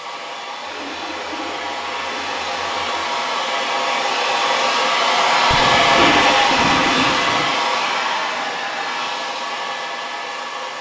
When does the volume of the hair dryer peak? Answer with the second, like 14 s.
6 s.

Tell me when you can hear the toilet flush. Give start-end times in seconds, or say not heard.
0.7-3.1, 5.5-7.5.